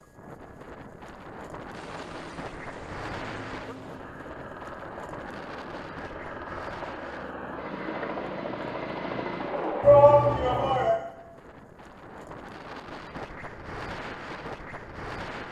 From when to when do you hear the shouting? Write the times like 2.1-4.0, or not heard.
9.8-10.9.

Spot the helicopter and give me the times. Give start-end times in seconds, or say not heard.
1.7-10.8.